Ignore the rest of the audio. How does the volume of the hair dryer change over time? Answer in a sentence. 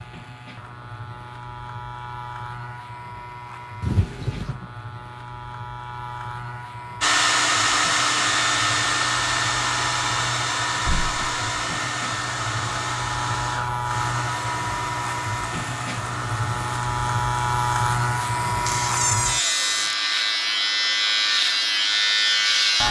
The loudness of the hair dryer goes down.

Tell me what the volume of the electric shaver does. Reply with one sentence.
The loudness of the electric shaver goes up.